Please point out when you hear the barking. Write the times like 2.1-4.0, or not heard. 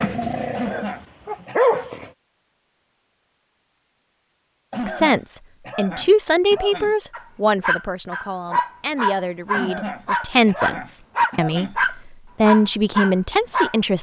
0.0-2.0, 7.1-13.8.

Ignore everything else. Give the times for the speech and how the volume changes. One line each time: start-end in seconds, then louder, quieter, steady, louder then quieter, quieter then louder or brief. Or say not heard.
4.8-13.9 quieter then louder.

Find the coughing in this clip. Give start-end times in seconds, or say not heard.
0.6-1.9, 4.7-7.0, 9.5-11.8.